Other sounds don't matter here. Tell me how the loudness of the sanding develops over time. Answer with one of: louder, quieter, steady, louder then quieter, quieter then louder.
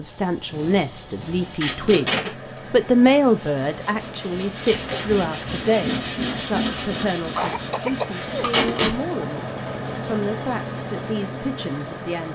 louder then quieter.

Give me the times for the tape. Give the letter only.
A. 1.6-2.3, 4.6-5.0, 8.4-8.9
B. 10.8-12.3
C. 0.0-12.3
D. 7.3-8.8
A.